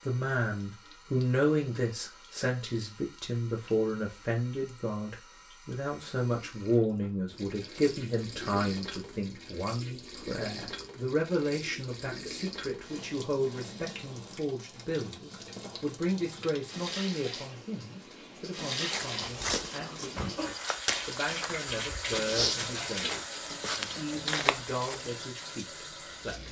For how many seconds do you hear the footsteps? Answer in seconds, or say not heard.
6 s.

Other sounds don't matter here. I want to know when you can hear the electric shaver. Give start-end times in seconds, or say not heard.
not heard.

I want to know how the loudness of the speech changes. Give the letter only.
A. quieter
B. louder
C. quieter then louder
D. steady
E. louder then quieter
A.